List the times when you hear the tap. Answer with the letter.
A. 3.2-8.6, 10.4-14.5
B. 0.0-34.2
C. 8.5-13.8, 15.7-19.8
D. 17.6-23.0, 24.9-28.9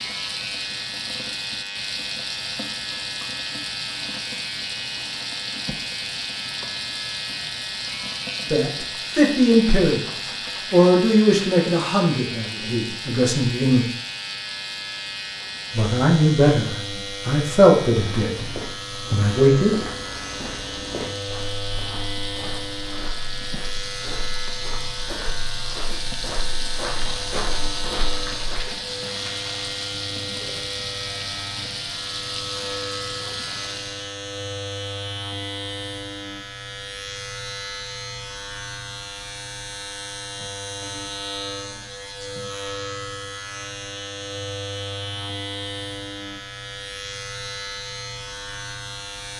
B.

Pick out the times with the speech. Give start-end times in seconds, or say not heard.
8.5-13.8, 15.7-19.8.